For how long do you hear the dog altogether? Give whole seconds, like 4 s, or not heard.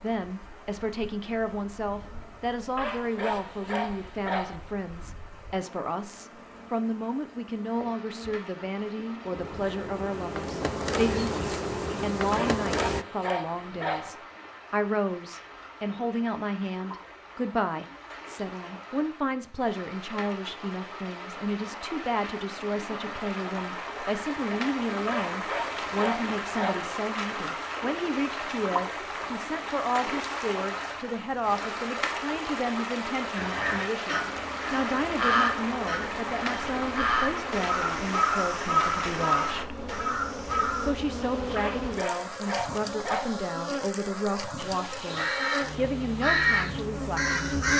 7 s.